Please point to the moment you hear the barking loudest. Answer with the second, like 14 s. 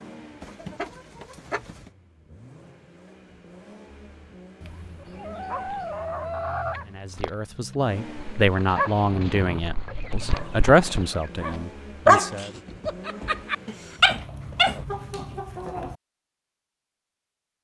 12 s.